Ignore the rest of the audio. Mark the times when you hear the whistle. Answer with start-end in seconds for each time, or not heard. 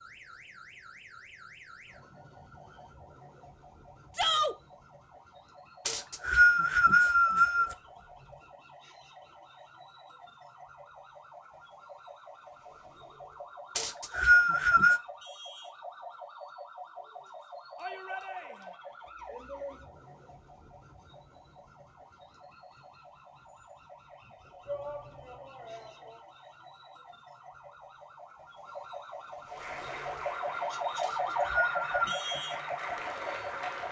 5.8-7.8, 13.8-15.0, 31.0-32.2.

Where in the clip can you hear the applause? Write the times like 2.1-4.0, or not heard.
29.4-33.8.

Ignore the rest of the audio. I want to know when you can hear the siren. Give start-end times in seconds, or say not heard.
0.0-33.8.